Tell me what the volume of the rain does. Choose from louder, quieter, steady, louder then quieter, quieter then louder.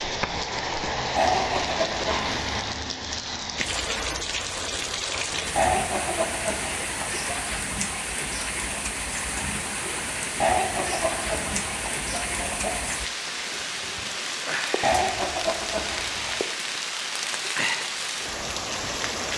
steady.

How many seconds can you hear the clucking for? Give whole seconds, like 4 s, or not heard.
7 s.